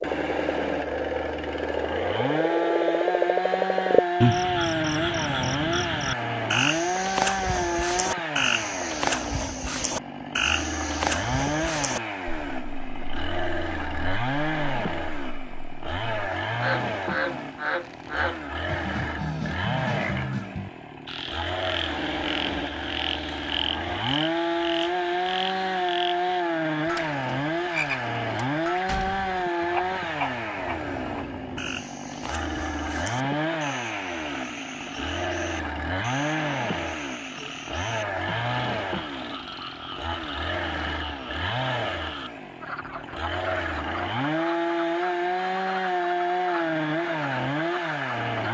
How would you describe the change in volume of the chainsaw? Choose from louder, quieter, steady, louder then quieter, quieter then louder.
steady.